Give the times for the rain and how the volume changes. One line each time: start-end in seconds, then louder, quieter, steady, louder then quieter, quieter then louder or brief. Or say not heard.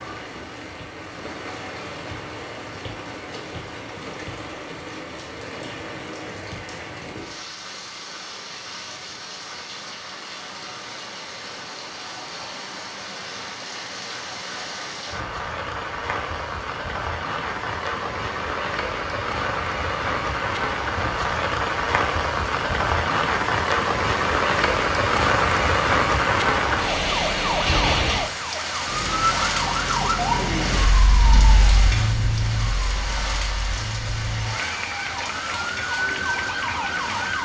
0.0-37.4 louder then quieter.